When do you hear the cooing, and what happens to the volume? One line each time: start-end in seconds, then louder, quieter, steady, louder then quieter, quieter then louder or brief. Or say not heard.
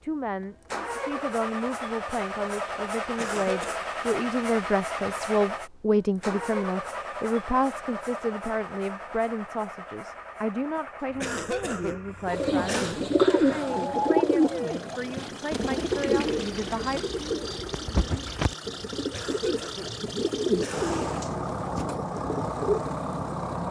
12.2-22.9 quieter.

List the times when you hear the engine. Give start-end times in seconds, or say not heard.
0.0-23.6.